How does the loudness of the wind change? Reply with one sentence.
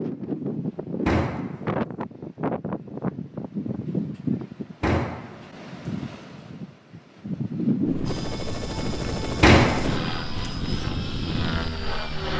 The loudness of the wind goes down, then up.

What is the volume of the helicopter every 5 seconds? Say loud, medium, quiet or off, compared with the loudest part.
off, loud, loud.